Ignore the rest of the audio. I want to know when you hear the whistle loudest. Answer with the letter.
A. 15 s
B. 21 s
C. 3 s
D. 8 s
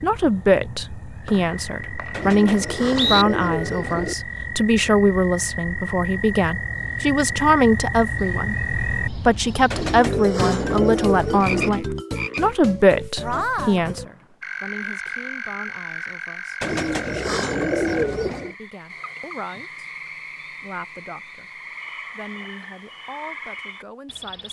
C.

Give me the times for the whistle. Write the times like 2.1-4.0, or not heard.
1.2-3.2, 13.8-14.2.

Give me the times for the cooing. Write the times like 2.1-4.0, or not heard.
2.1-4.2, 9.7-11.7, 16.6-18.6.